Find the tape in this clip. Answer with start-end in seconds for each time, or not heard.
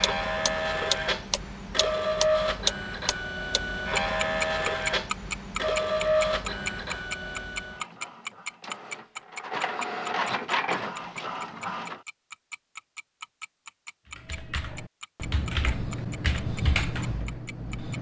not heard.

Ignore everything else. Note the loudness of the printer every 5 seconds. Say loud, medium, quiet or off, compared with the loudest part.
loud, loud, loud, off.